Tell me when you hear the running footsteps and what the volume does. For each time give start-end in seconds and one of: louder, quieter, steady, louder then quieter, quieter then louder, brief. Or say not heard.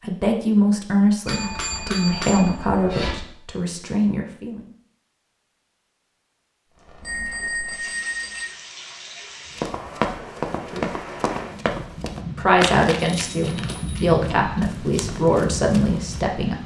9.6-16.2 quieter.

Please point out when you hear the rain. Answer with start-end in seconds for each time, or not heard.
6.7-16.6.